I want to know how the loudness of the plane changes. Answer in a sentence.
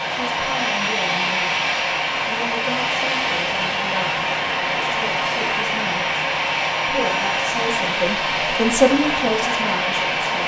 The volume of the plane stays about the same.